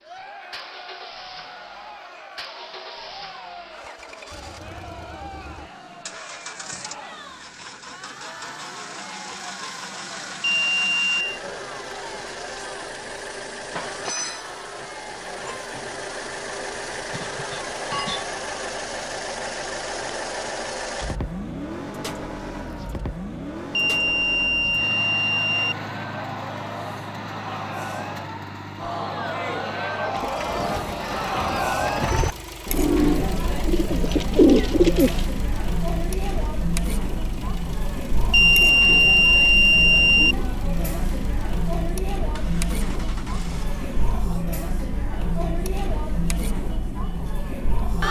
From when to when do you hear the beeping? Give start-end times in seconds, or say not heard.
10.4-11.4, 23.7-25.8, 38.3-40.4.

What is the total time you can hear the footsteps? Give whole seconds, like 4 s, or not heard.
not heard.